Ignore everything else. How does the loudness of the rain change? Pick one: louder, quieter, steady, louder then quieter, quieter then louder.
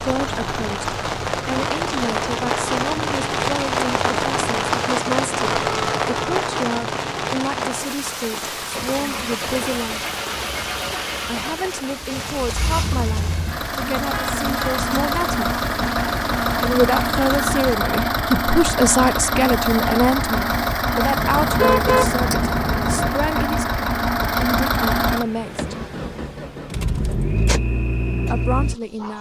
quieter.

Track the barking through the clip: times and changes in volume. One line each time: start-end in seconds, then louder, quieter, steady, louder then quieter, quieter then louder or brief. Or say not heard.
not heard.